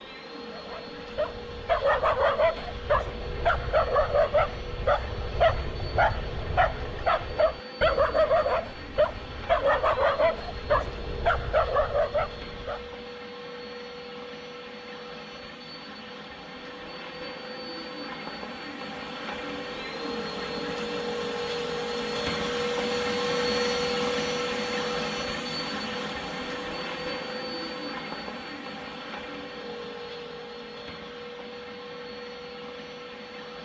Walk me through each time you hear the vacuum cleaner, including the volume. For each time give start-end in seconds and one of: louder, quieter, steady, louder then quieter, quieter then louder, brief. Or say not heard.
0.0-33.6 louder then quieter.